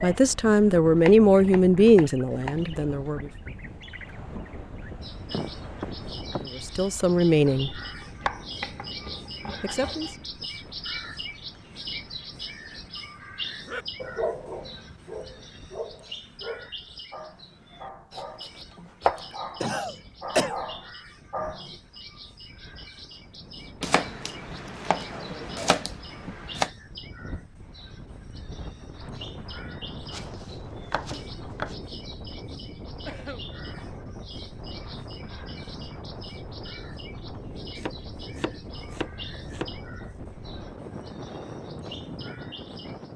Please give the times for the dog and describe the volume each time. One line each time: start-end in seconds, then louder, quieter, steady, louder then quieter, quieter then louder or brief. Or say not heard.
13.7-21.8 quieter then louder.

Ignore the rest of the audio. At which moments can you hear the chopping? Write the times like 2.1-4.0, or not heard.
1.0-2.7, 7.5-10.2, 18.1-19.2, 23.8-26.7, 30.1-31.8, 37.8-39.7.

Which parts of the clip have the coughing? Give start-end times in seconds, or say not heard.
5.3-6.5, 18.8-20.6, 33.0-33.5.